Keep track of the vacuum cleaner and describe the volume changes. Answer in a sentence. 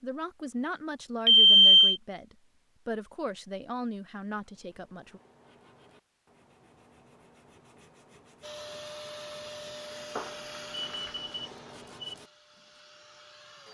The loudness of the vacuum cleaner goes down.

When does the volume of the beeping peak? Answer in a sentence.
The volume of the beeping peaks at 2 seconds.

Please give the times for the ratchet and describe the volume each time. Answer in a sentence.
The ratchet can't be heard in this clip.